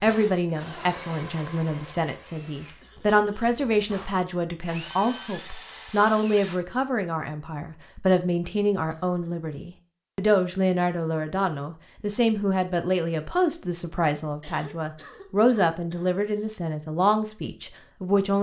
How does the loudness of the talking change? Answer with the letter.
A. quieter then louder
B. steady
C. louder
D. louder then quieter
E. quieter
B.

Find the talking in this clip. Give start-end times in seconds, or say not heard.
0.0-18.3.